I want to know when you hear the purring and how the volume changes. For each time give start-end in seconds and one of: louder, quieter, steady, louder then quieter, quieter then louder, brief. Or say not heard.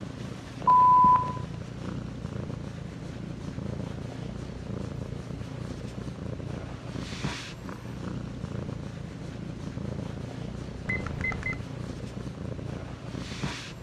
0.0-13.7 steady.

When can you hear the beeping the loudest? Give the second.
1 s.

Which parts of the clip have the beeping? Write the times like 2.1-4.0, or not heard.
0.7-1.4, 10.8-11.6.